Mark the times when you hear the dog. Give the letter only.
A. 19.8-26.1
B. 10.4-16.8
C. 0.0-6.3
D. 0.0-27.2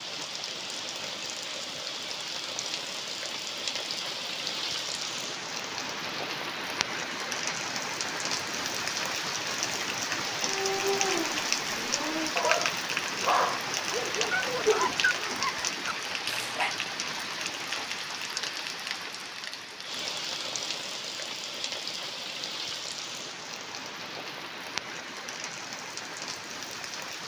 B.